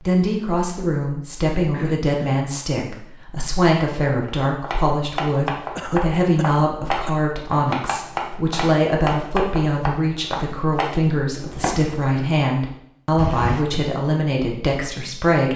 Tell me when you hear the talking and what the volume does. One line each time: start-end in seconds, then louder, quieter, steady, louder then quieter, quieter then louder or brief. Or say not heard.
0.1-15.5 steady.